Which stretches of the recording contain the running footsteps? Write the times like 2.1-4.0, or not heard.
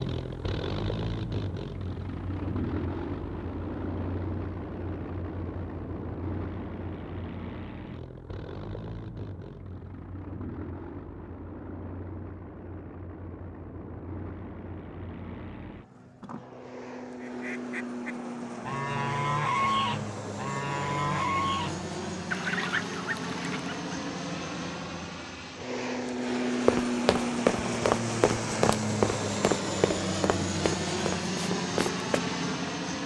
26.6-32.2.